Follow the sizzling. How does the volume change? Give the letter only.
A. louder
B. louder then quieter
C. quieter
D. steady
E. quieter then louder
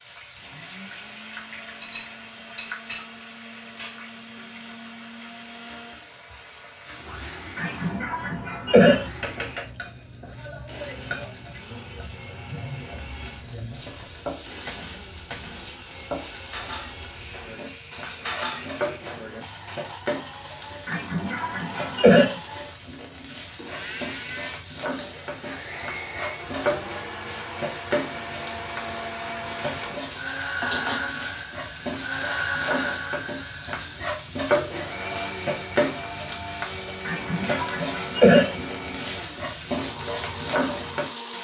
A.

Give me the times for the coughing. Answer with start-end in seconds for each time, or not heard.
7.5-9.1, 20.9-22.4, 37.0-38.5.